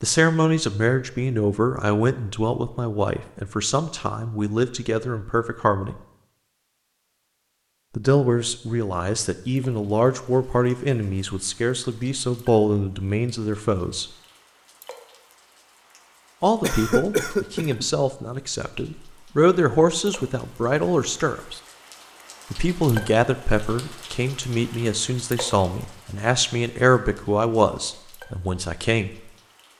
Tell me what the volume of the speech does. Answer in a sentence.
The loudness of the speech stays about the same.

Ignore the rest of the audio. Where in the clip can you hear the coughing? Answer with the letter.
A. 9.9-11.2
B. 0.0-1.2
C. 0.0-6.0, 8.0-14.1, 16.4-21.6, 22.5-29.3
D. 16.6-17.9
D.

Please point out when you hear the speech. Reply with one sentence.
You can hear the speech from 0.0 to 6.0 s, from 8.0 to 14.1 s, from 16.4 to 21.6 s and from 22.5 to 29.3 s.